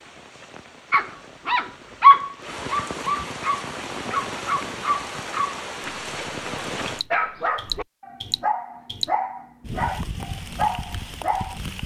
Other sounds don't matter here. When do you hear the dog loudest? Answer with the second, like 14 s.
2 s.